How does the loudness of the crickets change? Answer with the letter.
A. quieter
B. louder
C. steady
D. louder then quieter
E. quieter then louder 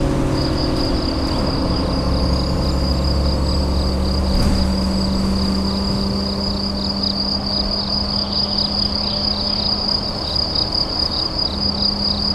B.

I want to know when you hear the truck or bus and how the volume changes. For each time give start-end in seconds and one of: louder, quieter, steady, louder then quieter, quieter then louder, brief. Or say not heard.
0.0-12.2 quieter.